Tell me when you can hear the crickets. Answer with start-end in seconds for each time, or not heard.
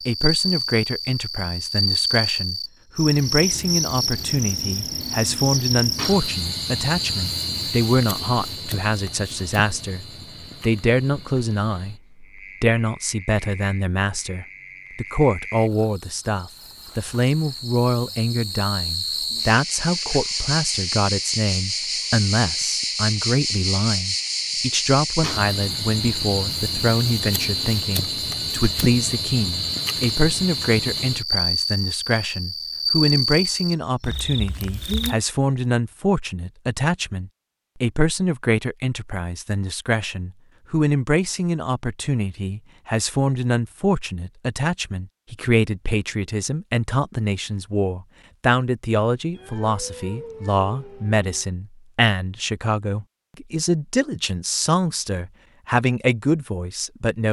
0.0-35.1.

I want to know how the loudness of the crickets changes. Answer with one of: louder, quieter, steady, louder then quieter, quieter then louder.
quieter then louder.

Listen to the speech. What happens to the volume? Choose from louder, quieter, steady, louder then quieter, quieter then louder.
steady.